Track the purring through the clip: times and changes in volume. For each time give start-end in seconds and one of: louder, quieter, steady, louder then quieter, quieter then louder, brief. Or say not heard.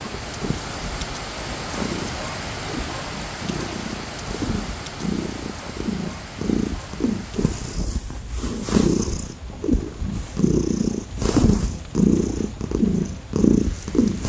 0.0-14.2 louder.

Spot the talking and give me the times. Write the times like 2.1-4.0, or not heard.
not heard.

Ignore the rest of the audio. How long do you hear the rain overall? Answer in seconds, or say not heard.
14 s.